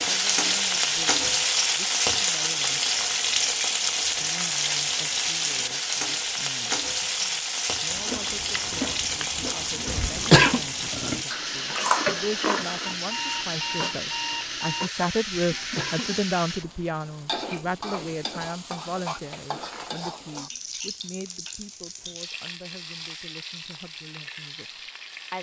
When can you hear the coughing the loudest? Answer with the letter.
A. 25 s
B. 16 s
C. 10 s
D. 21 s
C.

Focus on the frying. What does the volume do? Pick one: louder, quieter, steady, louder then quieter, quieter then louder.
quieter.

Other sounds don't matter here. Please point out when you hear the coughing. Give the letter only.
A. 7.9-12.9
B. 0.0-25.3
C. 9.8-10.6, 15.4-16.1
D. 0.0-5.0
C.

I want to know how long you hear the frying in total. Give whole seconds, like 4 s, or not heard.
25 s.